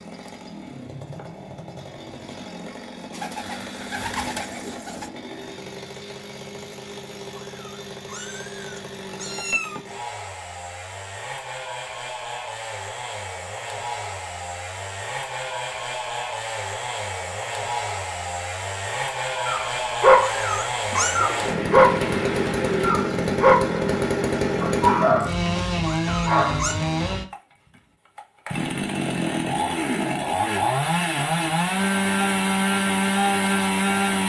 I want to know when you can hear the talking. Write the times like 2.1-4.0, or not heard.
not heard.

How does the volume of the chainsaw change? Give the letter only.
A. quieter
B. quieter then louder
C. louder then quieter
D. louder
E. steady
D.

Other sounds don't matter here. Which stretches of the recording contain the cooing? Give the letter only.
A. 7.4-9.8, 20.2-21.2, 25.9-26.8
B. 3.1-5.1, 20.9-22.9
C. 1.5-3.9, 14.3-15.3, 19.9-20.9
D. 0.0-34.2
B.